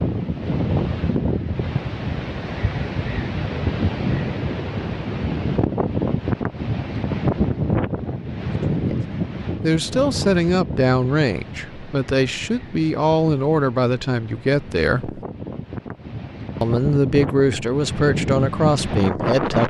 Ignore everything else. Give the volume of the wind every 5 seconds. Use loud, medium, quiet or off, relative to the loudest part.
loud, loud, medium, loud.